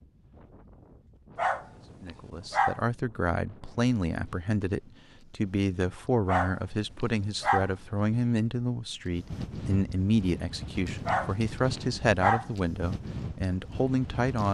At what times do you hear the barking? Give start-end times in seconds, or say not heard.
1.4-2.8, 6.2-7.7, 11.1-12.4.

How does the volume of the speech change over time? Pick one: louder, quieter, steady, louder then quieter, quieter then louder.
steady.